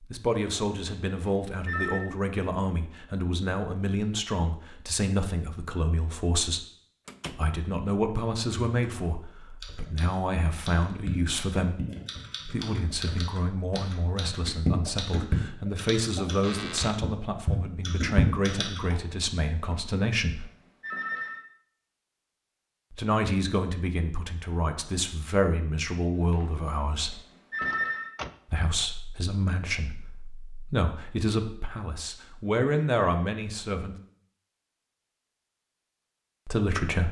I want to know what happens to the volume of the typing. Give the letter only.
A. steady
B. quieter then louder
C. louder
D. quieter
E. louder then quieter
C.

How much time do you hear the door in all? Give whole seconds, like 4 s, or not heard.
2 s.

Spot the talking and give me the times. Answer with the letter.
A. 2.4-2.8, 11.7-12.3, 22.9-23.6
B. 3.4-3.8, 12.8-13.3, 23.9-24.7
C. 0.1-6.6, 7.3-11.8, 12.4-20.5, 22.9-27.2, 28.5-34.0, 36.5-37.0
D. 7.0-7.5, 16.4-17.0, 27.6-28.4
C.